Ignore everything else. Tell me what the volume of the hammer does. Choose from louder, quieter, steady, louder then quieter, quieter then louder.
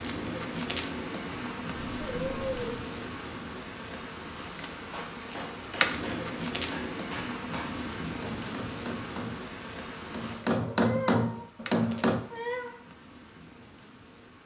louder.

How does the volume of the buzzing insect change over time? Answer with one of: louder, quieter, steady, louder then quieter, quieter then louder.
quieter.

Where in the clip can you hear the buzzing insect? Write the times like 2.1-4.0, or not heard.
0.0-14.4.